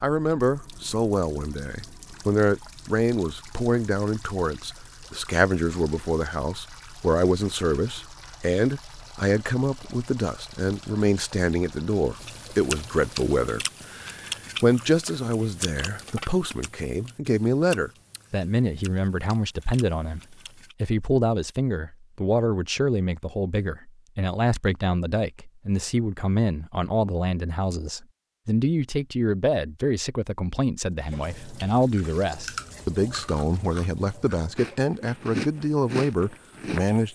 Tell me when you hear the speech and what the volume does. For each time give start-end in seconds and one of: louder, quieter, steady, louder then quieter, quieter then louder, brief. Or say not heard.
0.0-37.0 steady.